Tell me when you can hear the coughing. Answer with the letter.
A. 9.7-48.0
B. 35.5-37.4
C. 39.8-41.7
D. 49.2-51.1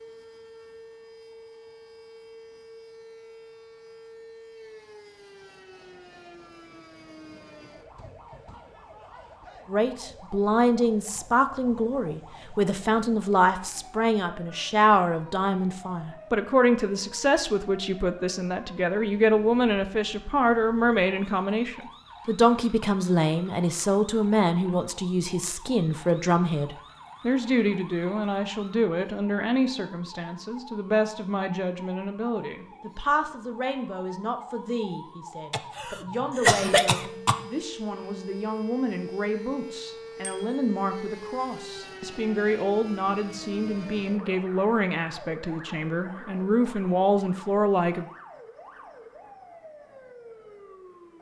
B.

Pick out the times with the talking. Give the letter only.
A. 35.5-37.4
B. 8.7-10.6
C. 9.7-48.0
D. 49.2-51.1
C.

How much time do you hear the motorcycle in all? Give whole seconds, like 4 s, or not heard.
not heard.